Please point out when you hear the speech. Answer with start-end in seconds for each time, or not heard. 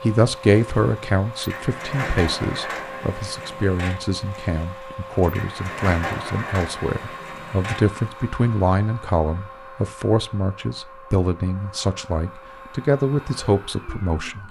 0.0-14.4.